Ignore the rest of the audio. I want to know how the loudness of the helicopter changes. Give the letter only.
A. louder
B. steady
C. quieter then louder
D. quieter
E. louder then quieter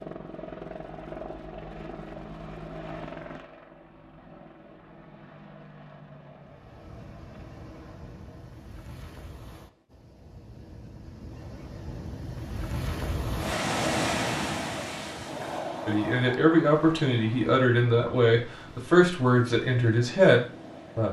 D.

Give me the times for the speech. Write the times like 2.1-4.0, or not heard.
15.8-21.0.